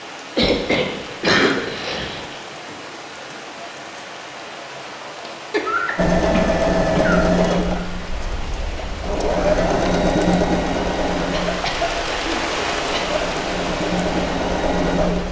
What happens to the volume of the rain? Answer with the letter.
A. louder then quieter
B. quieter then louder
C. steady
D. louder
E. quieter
D.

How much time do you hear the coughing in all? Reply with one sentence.
You can hear the coughing for 6 seconds altogether.